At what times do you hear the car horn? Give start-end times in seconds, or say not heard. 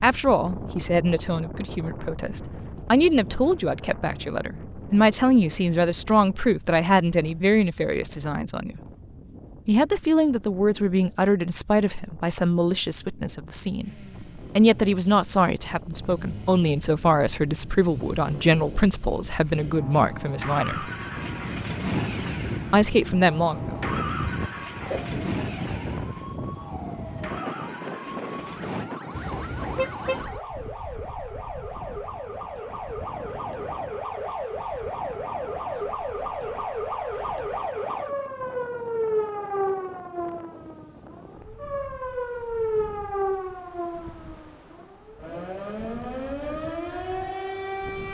29.1-30.2.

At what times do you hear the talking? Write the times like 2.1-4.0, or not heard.
0.0-8.8, 9.7-13.9, 14.6-20.9, 22.7-23.6.